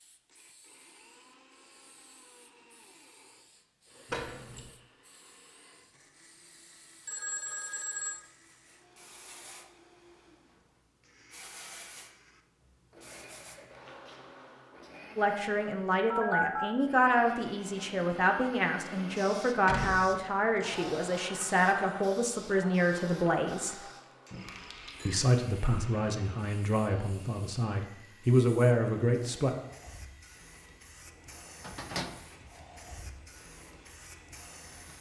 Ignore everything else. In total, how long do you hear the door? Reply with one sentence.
You can hear the door for 2 seconds altogether.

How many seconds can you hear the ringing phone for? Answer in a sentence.
The ringing phone can be heard for 3 seconds in total.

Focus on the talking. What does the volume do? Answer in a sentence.
The loudness of the talking stays about the same.